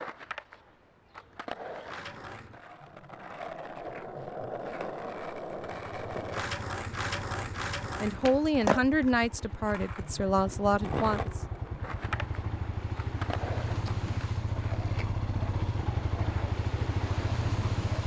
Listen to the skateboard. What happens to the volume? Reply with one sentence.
The volume of the skateboard goes up, then down.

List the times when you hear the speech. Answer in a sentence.
You can hear the speech from 8.0 to 11.4 s.